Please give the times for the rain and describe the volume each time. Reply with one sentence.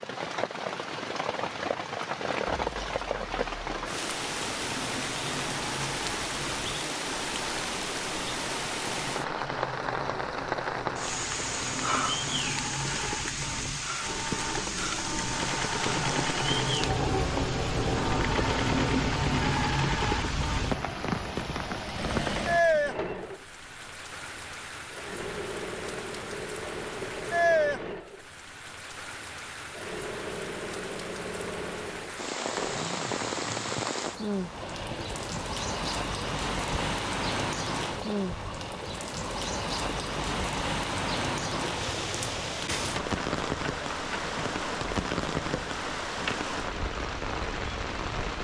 The rain can be heard from 0.0 to 48.4 s, at a steady volume.